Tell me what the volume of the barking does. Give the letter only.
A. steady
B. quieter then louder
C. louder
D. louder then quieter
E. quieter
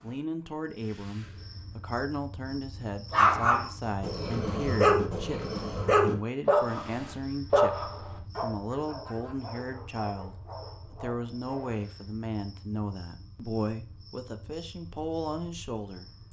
E.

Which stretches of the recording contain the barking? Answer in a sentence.
You can hear the barking from 3.1 to 11.8 s.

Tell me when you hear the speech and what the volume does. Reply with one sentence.
You can hear the speech from 0.0 to 16.1 s, at a steady volume.